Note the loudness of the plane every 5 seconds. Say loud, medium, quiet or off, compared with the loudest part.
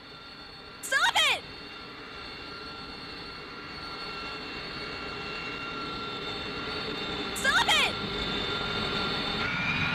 medium, loud.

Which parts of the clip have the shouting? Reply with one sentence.
The shouting can be heard from 0.8 to 1.4 s and from 7.3 to 8.0 s.